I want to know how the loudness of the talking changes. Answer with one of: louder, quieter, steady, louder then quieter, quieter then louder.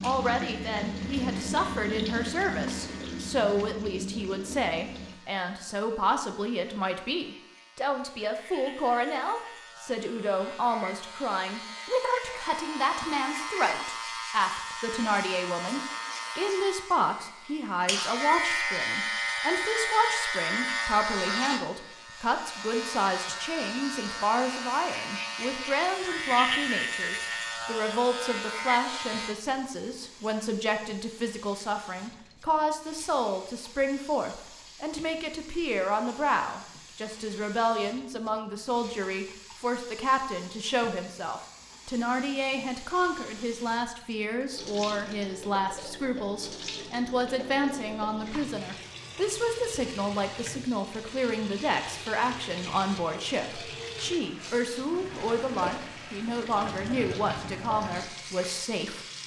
steady.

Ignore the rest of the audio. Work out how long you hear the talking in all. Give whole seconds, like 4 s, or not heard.
59 s.